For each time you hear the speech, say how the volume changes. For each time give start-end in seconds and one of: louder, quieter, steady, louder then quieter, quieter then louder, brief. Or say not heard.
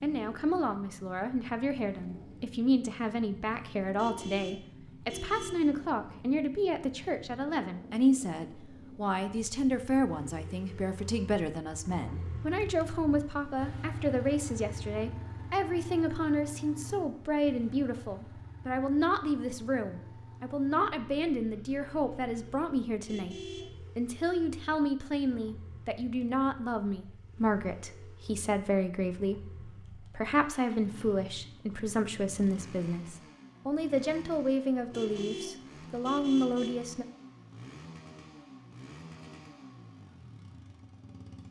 0.0-23.4 steady
23.9-37.0 steady.